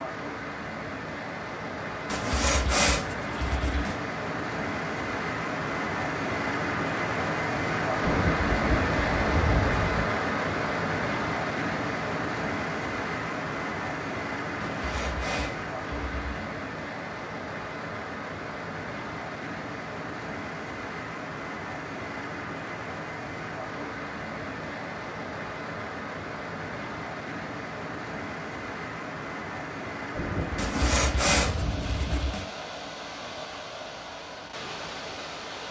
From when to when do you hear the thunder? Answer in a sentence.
The thunder can be heard from 8.0 to 10.1 s and from 30.1 to 32.1 s.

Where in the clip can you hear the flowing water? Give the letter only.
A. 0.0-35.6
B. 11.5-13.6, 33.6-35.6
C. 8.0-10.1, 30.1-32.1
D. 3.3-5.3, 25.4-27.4
A.